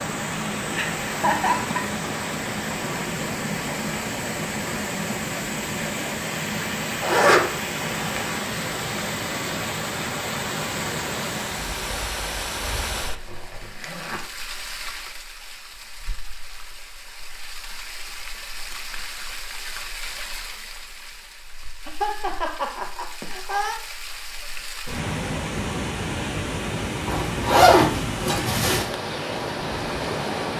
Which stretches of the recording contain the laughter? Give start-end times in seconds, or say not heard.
0.8-1.9, 21.9-23.8.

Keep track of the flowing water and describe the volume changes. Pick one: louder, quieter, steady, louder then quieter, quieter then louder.
quieter then louder.